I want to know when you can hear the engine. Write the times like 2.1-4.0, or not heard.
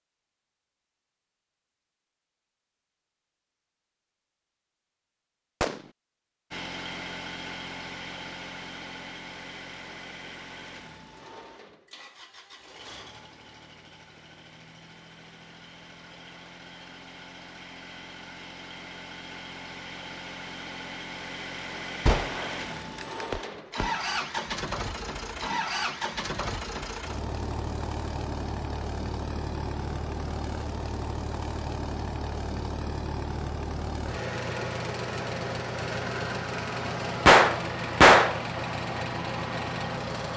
6.5-40.3.